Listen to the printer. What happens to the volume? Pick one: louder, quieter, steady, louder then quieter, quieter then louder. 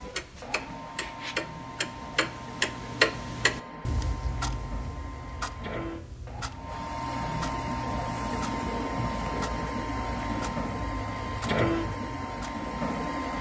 louder.